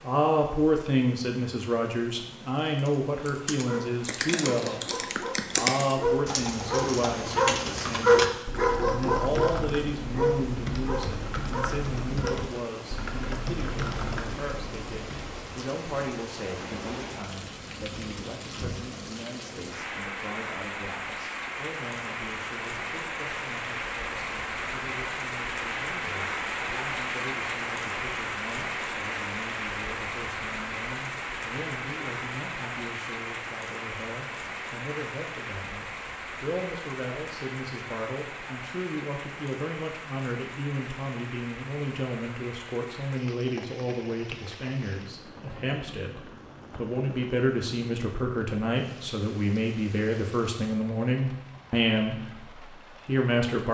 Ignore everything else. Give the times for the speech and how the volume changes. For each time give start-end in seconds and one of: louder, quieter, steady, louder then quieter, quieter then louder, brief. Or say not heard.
0.0-53.6 quieter then louder.